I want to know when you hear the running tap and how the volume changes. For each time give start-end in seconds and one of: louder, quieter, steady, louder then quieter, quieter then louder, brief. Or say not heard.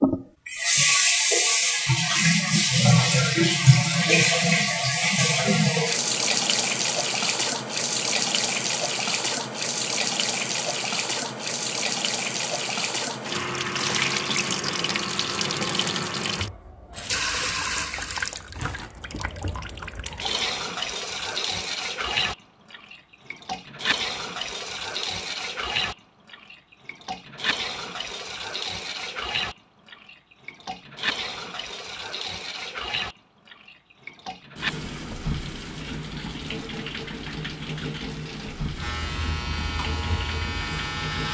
0.0-41.3 quieter.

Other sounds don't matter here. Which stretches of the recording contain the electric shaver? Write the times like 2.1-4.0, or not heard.
38.8-41.3.